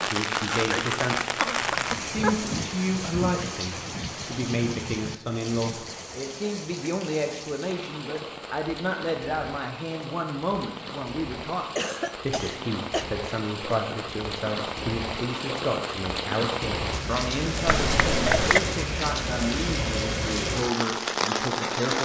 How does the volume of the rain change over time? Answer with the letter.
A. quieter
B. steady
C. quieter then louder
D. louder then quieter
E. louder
C.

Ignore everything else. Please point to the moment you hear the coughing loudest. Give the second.
18 s.